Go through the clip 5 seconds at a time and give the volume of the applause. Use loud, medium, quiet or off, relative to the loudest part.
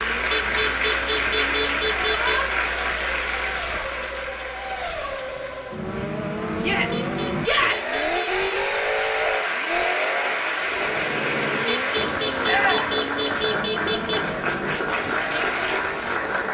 loud, medium, loud, loud.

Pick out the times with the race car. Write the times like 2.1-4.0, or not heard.
0.0-16.4.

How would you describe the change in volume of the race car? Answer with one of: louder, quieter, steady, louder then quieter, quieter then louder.
louder then quieter.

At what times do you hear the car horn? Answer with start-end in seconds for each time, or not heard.
0.3-2.5, 6.9-8.4, 11.7-14.3.